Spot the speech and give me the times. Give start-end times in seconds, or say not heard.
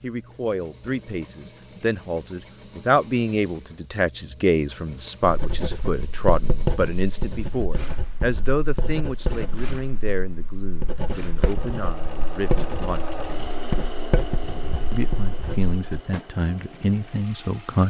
0.0-13.2, 14.9-17.8.